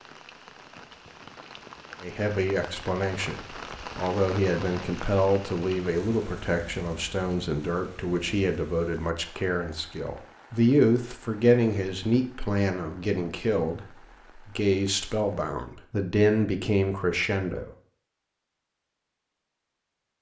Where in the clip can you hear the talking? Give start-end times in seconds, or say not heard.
2.0-17.7.